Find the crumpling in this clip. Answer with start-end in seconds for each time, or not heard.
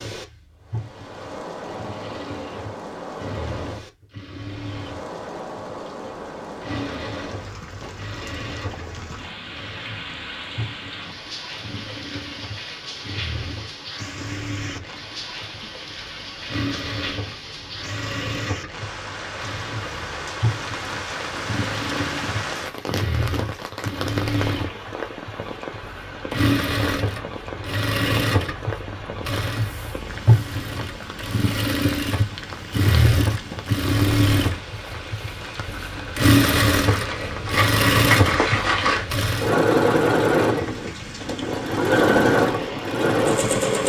36.4-39.0.